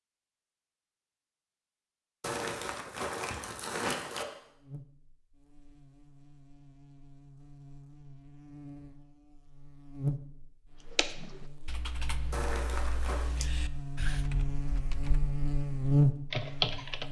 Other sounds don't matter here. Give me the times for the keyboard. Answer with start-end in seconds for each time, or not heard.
10.8-17.0.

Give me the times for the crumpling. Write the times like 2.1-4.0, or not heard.
2.2-4.2, 12.3-13.3.